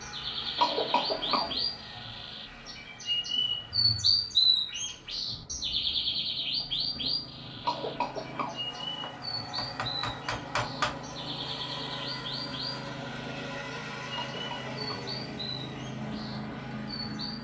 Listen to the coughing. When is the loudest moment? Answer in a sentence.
The loudest moment of the coughing is at 1 second.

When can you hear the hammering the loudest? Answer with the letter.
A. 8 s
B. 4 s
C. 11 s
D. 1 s
C.